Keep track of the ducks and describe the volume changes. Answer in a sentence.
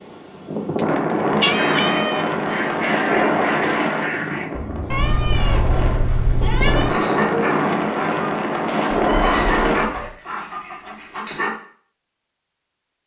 The loudness of the ducks stays about the same.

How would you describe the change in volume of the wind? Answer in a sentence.
The loudness of the wind goes down, then up.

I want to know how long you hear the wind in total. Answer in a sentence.
The wind can be heard for 10 seconds in total.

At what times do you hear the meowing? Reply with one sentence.
The meowing can be heard from 1.4 to 2.2 s, from 4.9 to 6.9 s and from 8.9 to 10.2 s.